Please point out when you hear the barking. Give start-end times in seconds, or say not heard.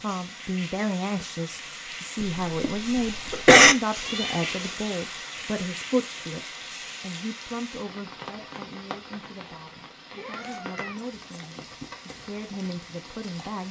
not heard.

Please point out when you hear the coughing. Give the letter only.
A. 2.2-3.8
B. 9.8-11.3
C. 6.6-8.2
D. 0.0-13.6
A.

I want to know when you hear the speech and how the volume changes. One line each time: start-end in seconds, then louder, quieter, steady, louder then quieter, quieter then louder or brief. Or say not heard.
0.0-13.6 quieter then louder.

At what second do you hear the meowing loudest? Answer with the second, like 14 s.
4 s.